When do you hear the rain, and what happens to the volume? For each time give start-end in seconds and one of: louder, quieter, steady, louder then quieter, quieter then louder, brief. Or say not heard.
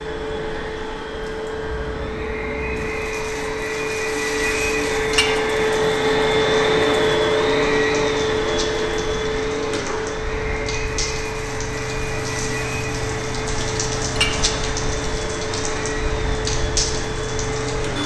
0.0-18.0 louder.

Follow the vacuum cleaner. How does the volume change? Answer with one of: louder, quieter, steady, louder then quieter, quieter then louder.
louder then quieter.